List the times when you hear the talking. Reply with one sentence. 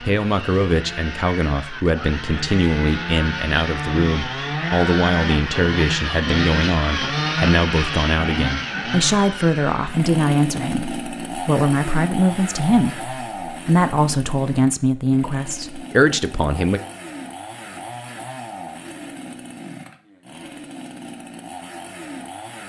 The talking can be heard from 0.0 to 16.8 s.